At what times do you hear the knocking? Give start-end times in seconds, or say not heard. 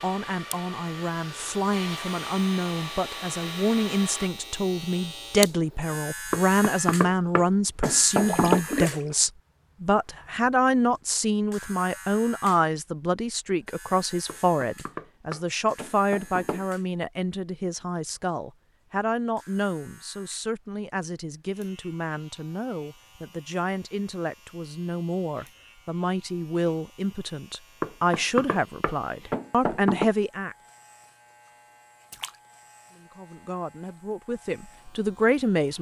6.3-8.7, 14.2-16.6, 27.8-30.1.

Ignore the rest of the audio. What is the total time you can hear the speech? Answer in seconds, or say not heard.
33 s.